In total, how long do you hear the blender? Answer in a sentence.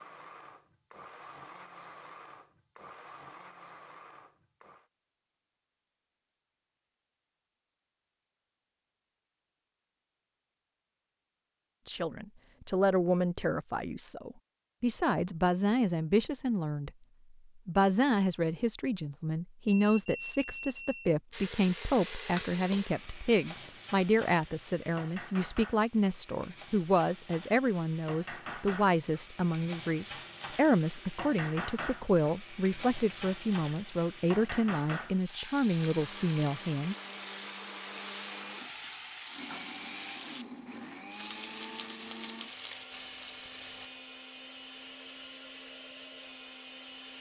The blender can be heard for 16 seconds in total.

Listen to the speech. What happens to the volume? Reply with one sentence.
The volume of the speech stays about the same.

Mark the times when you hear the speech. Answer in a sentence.
The speech can be heard from 11.8 to 16.9 s and from 17.6 to 37.0 s.